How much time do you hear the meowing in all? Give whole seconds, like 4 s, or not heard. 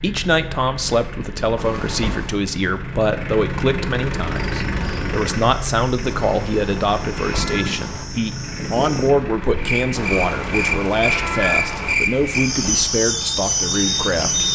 5 s.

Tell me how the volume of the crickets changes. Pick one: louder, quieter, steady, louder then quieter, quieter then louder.
louder.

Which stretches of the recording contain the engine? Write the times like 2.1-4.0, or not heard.
0.0-14.5.